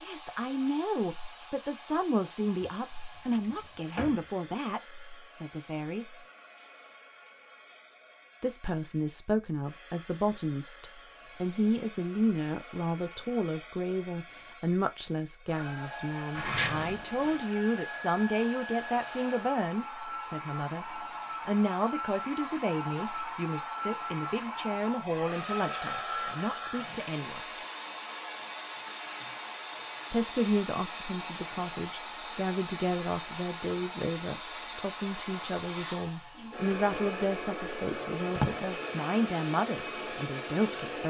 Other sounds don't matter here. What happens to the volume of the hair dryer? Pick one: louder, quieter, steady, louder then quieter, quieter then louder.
louder.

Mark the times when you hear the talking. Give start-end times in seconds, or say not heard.
0.0-6.2, 8.4-27.4, 30.1-41.0.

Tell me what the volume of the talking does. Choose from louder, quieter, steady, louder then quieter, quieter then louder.
steady.